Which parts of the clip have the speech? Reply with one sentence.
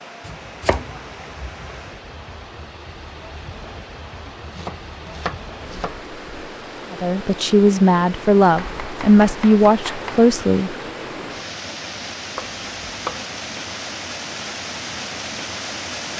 You can hear the speech from 6.9 to 10.8 s.